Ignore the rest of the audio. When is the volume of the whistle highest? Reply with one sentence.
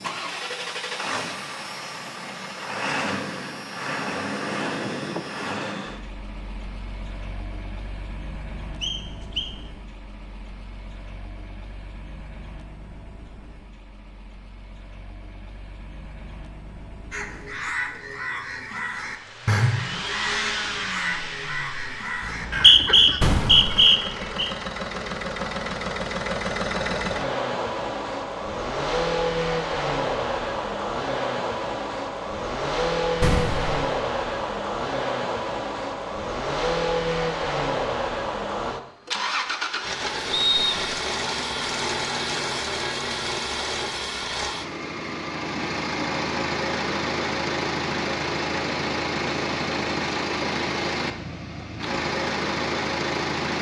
The loudest moment of the whistle is at 23 seconds.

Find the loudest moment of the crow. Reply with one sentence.
The volume of the crow peaks at 20 seconds.